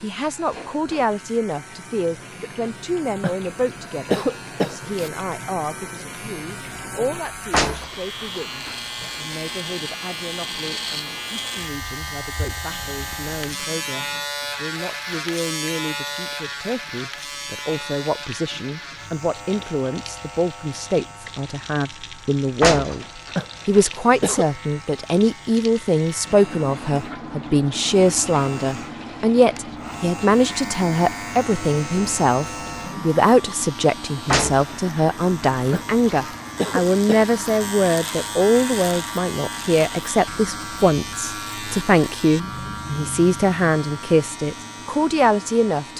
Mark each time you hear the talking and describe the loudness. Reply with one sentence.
You can hear the talking from 0.0 to 23.1 s, getting quieter then louder; and from 23.6 to 45.9 s, at a steady volume.